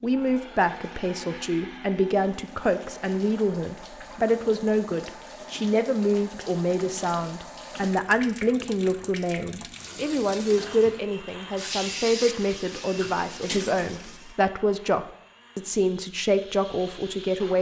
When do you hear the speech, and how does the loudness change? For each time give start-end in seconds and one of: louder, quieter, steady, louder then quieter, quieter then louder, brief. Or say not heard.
0.0-17.5 steady.